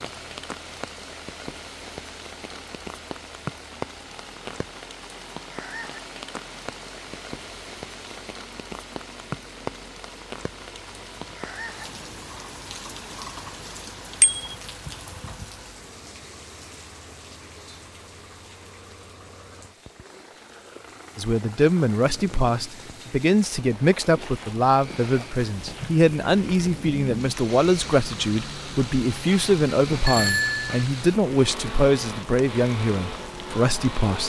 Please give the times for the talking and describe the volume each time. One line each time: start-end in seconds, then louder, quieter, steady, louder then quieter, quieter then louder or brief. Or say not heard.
21.1-34.2 steady.